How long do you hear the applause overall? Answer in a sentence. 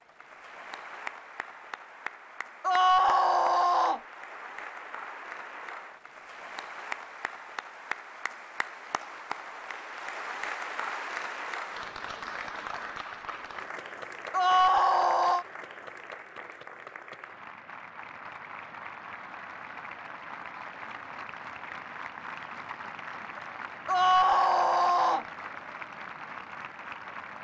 You can hear the applause for 27 seconds altogether.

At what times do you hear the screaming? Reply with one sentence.
You can hear the screaming from 2.6 to 4.0 s, from 14.3 to 15.4 s and from 23.9 to 25.2 s.